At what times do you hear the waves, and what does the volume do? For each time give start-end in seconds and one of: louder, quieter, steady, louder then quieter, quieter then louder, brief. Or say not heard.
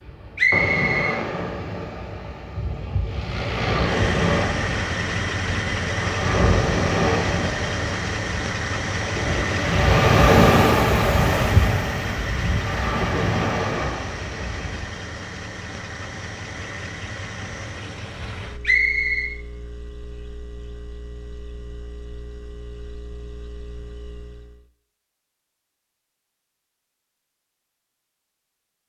0.0-14.9 louder then quieter.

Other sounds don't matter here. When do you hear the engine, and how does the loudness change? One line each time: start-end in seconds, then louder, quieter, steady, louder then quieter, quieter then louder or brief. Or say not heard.
3.0-24.6 quieter.